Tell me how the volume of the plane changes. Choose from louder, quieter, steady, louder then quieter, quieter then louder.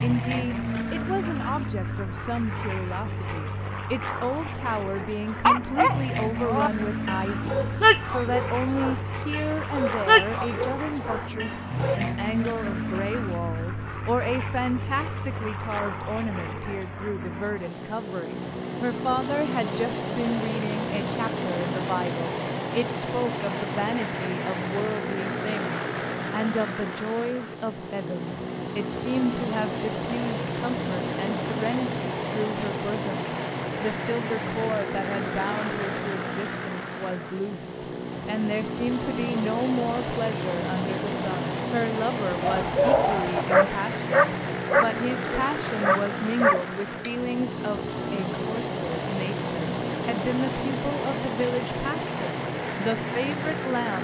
steady.